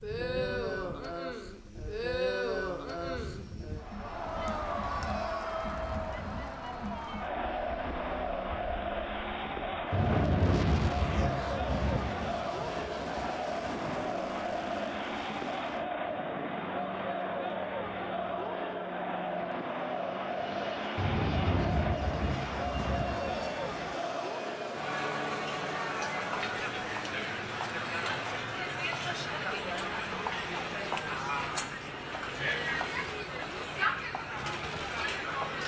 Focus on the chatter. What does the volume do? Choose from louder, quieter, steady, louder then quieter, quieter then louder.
steady.